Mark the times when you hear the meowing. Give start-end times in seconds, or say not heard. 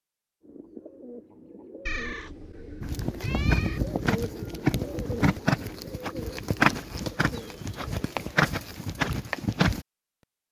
1.9-3.8.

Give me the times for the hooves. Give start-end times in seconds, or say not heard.
2.8-9.8.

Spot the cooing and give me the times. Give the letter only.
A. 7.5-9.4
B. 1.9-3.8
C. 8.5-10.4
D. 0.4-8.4
D.